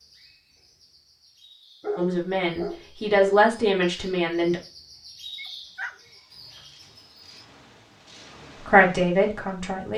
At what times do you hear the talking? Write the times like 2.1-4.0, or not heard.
1.9-4.6, 8.7-9.9.